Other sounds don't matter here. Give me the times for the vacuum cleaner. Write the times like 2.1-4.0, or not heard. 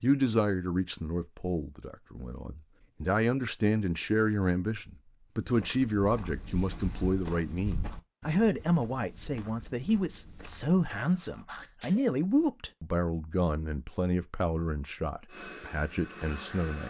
15.2-16.8.